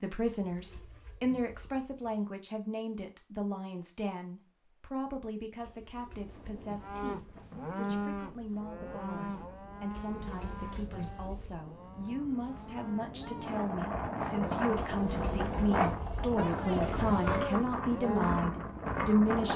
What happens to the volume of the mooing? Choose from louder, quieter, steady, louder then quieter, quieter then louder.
quieter then louder.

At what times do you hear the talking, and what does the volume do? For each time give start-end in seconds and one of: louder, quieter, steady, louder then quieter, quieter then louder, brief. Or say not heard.
0.0-19.5 quieter then louder.